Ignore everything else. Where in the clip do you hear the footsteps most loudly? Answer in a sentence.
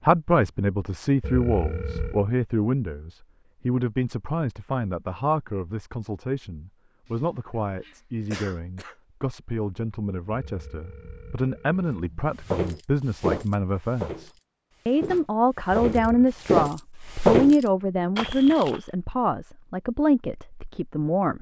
The loudest moment of the footsteps is at 17 seconds.